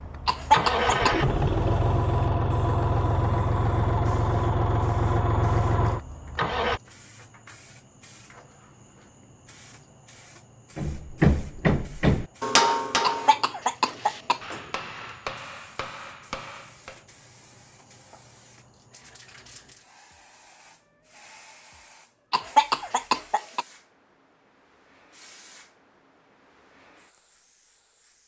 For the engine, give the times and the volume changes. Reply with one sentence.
You can hear the engine from 0.0 to 6.8 s, at a steady volume.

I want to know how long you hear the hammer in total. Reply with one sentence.
The hammer can be heard for 6 seconds in total.